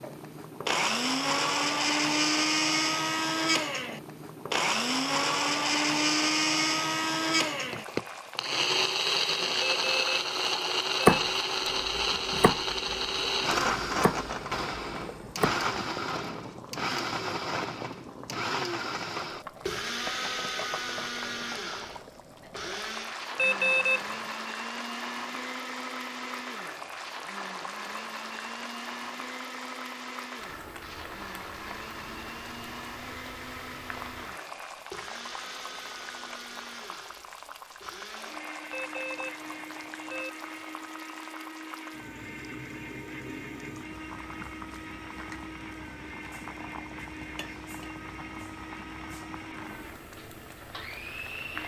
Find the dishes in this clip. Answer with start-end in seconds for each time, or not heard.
not heard.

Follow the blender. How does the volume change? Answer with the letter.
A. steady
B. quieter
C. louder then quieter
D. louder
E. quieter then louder
B.